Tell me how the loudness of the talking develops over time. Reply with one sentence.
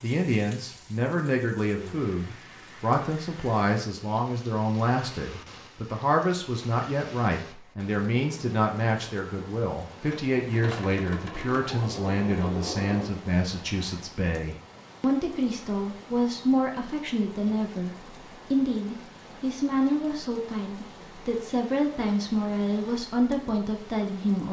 The volume of the talking stays about the same.